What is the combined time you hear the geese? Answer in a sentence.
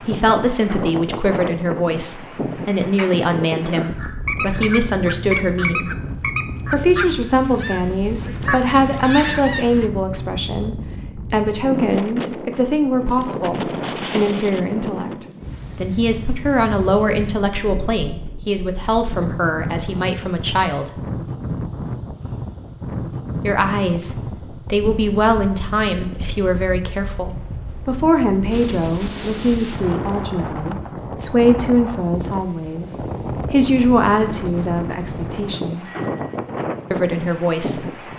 The geese can be heard for 6 seconds in total.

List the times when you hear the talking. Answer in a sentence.
The talking can be heard from 0.1 to 5.9 s, from 6.7 to 20.9 s, from 23.4 to 35.9 s and from 36.9 to 37.9 s.